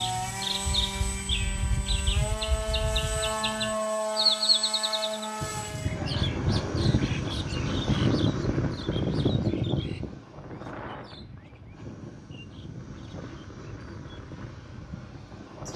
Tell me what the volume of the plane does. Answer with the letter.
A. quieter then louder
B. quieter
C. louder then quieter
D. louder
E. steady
B.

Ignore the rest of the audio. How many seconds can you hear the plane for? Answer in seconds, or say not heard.
16 s.